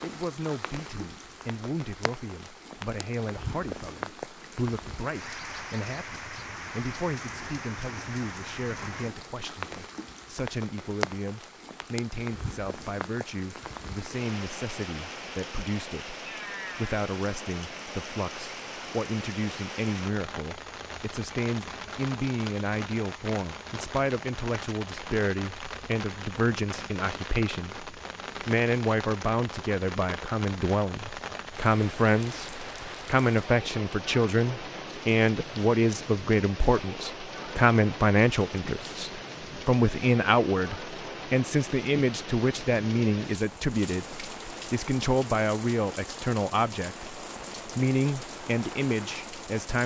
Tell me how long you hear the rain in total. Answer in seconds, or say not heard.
50 s.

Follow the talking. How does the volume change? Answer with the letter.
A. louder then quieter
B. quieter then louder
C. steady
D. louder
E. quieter
D.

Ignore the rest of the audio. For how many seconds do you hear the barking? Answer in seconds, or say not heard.
not heard.